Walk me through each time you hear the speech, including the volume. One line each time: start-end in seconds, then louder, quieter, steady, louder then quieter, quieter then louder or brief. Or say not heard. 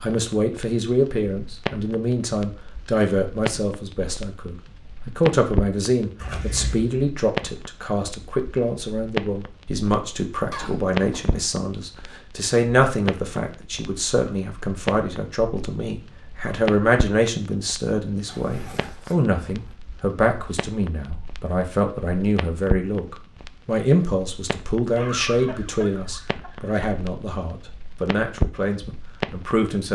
0.0-29.9 steady.